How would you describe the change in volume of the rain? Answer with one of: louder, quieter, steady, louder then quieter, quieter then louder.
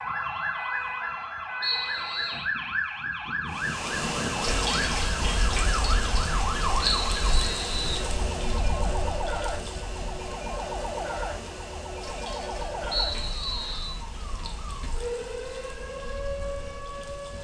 quieter.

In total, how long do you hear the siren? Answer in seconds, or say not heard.
17 s.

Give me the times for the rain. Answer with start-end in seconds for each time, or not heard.
3.5-17.3.